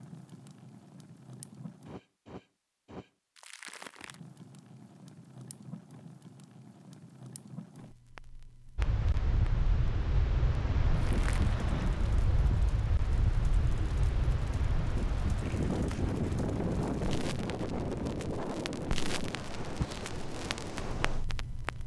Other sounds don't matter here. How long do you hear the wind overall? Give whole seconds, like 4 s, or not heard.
13 s.